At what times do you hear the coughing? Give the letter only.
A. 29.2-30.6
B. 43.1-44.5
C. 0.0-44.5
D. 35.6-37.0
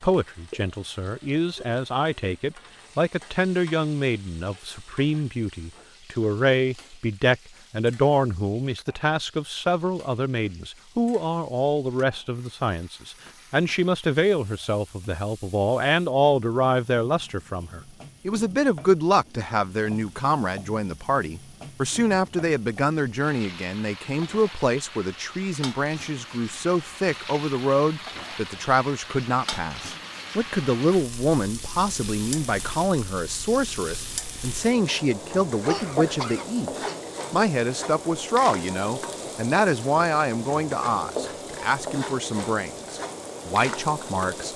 D.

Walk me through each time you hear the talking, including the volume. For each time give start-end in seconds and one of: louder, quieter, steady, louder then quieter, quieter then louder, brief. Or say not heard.
0.0-44.5 steady.